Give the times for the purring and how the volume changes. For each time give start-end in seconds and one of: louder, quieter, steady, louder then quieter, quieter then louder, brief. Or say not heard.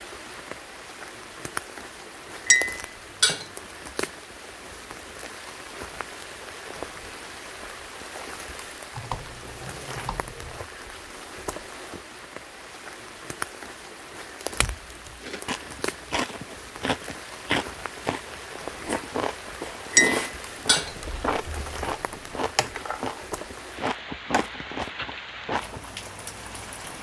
not heard.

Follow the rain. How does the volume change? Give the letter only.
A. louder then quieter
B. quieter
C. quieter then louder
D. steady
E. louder
D.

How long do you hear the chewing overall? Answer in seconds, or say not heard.
11 s.